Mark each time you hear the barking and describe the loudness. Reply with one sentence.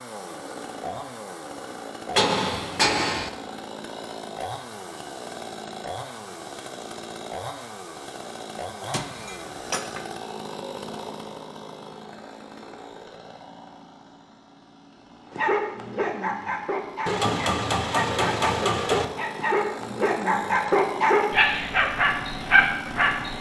You can hear the barking from 15.3 to 23.3 s, getting louder.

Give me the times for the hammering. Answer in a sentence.
You can hear the hammering from 2.1 to 3.3 s, from 8.9 to 10.1 s and from 17.1 to 19.1 s.